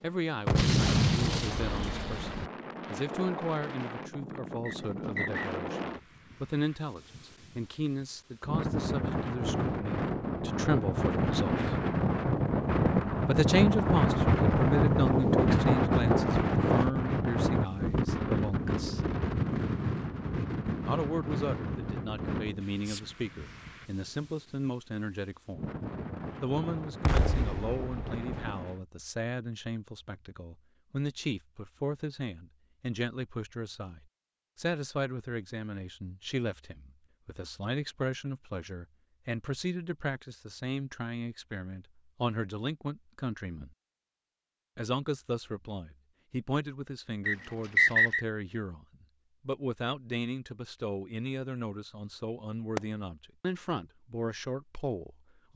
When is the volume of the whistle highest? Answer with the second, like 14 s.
48 s.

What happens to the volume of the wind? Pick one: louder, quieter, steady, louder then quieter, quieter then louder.
louder then quieter.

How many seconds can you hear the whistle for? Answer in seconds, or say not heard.
2 s.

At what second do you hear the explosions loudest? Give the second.
1 s.